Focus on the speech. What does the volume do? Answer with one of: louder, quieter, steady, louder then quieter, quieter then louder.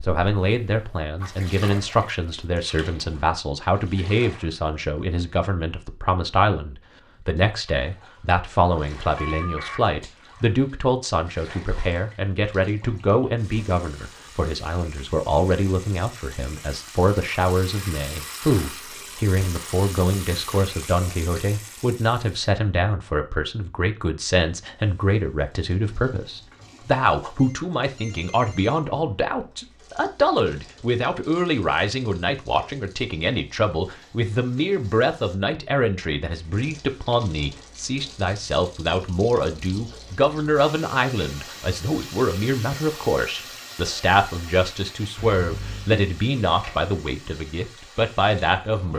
steady.